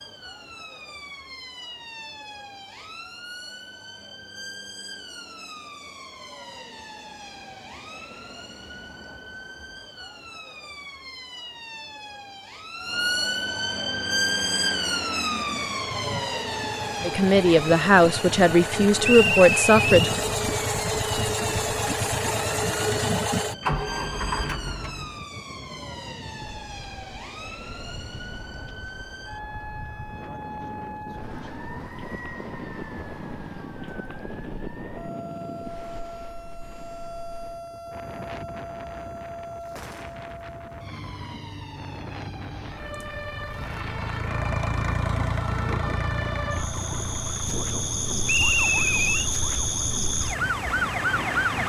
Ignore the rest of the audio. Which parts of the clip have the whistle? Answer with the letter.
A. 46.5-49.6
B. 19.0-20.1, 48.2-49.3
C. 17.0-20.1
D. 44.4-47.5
B.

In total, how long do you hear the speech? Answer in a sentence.
You can hear the speech for 3 seconds altogether.